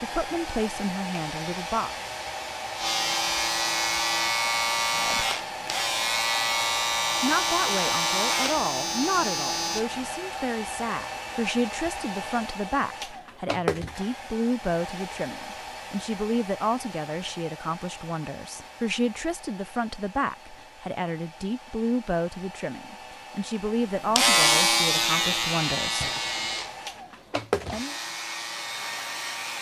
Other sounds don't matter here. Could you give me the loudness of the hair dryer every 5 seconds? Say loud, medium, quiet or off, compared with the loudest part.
loud, loud, loud, medium, medium, loud.